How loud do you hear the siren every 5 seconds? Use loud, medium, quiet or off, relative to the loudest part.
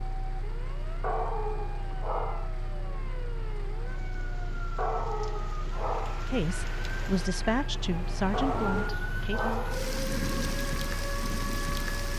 medium, loud, loud.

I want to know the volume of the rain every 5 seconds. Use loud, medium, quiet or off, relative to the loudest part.
quiet, medium, loud.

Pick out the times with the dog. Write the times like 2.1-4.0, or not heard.
1.0-2.5, 4.8-6.2, 8.3-9.8.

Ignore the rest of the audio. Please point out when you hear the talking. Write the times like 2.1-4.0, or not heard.
6.3-9.7.